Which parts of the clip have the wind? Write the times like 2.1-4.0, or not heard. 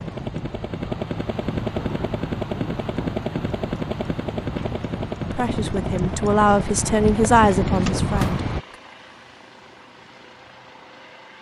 0.0-8.6.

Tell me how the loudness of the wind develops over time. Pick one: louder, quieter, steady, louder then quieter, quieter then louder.
louder.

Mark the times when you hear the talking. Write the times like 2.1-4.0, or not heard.
5.3-8.8.